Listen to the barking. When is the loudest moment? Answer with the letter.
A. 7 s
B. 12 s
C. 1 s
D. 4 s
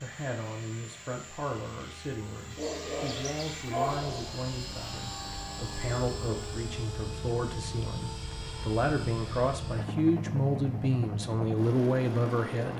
D.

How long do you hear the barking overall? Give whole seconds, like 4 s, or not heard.
2 s.